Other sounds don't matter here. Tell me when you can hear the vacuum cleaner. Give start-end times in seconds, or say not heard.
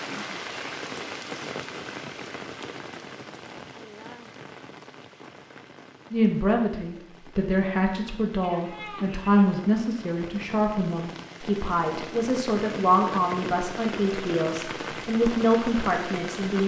not heard.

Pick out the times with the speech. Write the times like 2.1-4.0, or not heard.
6.1-16.6.